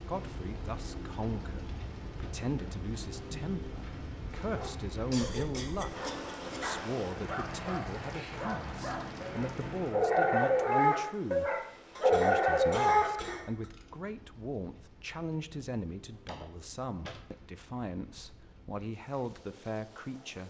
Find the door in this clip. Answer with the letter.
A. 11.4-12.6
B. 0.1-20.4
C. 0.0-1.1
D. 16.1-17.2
D.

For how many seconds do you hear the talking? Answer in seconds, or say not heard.
20 s.